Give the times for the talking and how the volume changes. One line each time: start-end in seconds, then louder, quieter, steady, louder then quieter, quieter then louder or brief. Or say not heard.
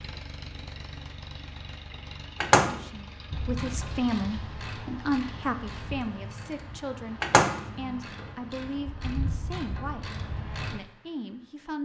2.6-10.1 quieter
10.7-11.7 brief.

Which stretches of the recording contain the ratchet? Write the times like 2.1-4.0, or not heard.
3.3-10.8.